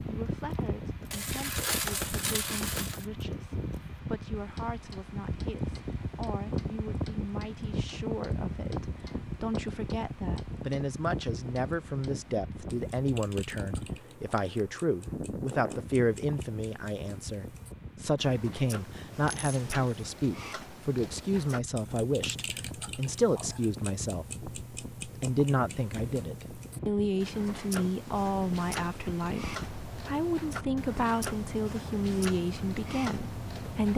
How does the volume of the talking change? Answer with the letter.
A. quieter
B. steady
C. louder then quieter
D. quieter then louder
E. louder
E.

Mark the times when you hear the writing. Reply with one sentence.
You can't hear the writing here.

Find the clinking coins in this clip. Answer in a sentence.
The clinking coins can be heard from 1.1 to 3.0 s and from 19.2 to 20.1 s.